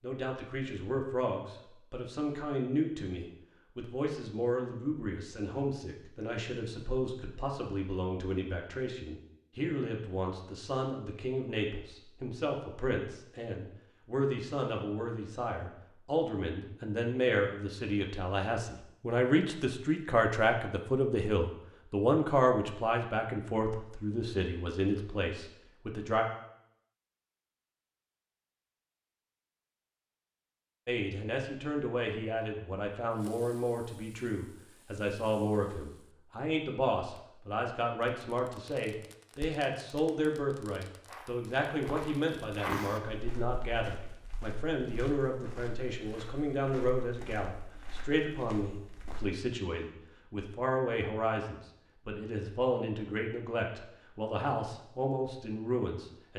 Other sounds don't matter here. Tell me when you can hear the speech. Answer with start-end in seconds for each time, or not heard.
0.0-26.2, 30.9-56.3.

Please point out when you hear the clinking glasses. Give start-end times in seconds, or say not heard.
not heard.